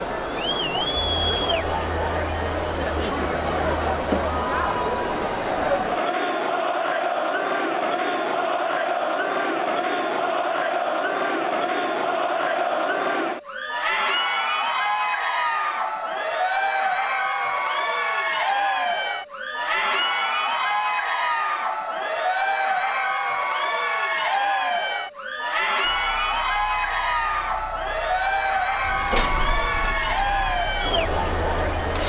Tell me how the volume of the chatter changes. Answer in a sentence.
The loudness of the chatter stays about the same.